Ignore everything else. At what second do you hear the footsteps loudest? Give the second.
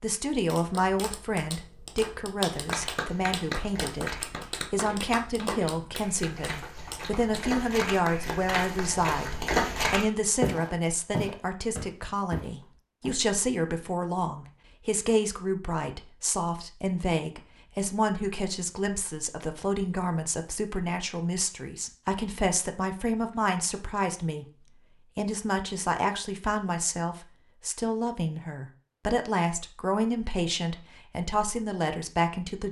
10 s.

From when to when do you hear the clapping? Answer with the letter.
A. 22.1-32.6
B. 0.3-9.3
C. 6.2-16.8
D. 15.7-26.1
B.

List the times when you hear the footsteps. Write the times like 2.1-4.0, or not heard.
2.6-13.1.